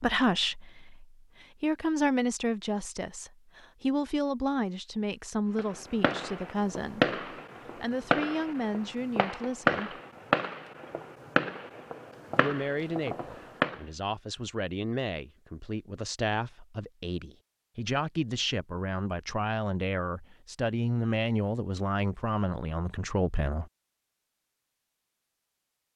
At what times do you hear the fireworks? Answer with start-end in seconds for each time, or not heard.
5.5-13.8.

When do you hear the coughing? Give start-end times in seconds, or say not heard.
not heard.